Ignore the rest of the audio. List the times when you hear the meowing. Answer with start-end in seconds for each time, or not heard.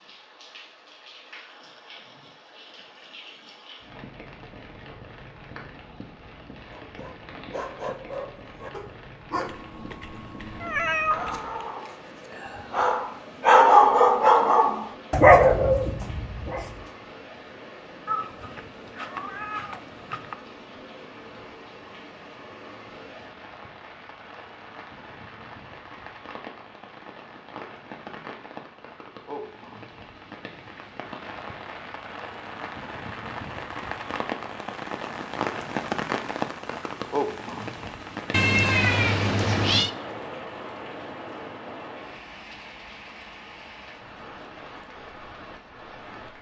9.4-11.4, 18.1-20.4, 38.3-39.9.